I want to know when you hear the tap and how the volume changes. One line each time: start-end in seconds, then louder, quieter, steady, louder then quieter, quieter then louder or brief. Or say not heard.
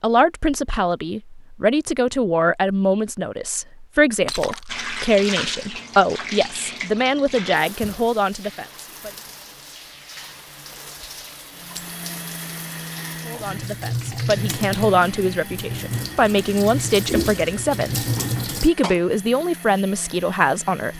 4.7-18.7 quieter then louder.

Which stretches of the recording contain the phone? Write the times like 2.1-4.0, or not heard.
not heard.